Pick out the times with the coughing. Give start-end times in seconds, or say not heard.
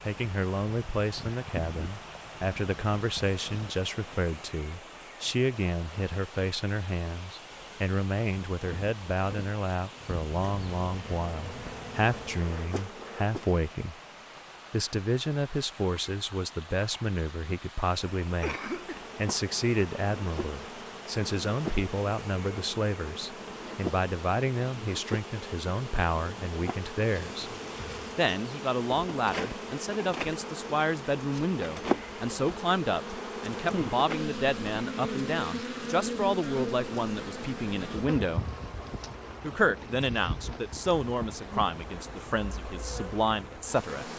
18.4-19.1.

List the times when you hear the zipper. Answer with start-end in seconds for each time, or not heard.
not heard.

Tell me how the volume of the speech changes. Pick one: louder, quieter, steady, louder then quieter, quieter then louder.
steady.